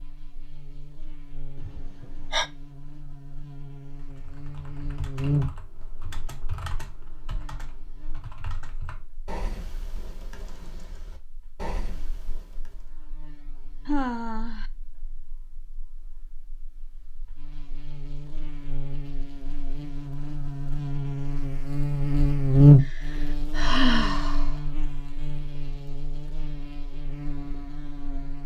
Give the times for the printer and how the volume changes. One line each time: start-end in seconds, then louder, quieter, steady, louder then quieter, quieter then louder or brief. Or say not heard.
not heard.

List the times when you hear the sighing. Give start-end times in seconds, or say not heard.
1.6-2.5, 13.8-14.7, 22.8-24.5.